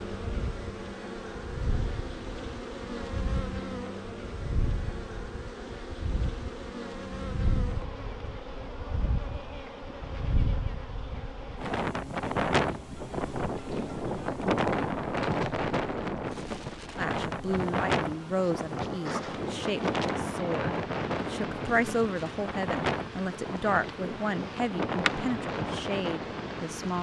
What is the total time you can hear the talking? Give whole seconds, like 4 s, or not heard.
10 s.